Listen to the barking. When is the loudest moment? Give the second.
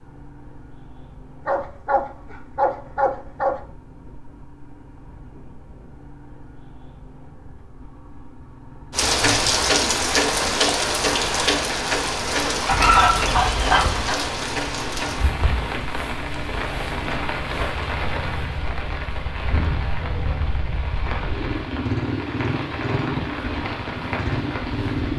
13 s.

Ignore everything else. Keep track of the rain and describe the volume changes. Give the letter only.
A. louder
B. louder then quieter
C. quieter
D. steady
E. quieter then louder
C.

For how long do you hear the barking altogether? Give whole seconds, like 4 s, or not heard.
4 s.